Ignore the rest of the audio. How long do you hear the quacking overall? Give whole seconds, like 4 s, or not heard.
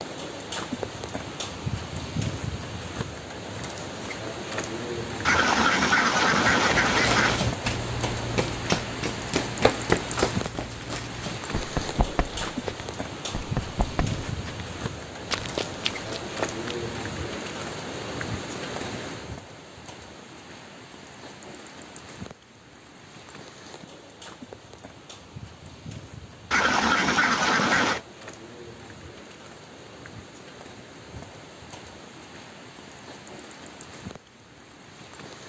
4 s.